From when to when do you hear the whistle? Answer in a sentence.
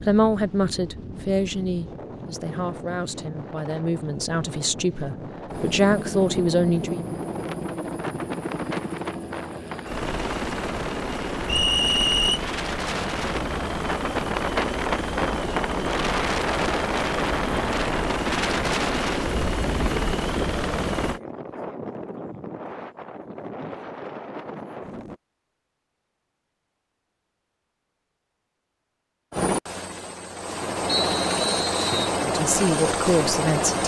You can hear the whistle from 11.4 to 12.4 s and from 30.9 to 32.1 s.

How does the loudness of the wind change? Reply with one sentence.
The volume of the wind goes up, then down.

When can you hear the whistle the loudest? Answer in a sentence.
The volume of the whistle peaks at 12 seconds.